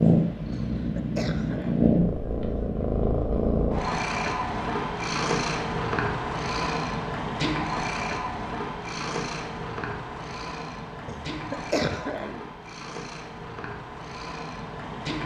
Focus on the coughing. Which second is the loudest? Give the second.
12 s.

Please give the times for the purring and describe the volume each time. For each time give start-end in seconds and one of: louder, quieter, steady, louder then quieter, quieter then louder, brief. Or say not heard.
0.0-15.2 quieter.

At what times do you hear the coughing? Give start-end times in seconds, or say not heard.
0.5-1.8, 11.1-12.4.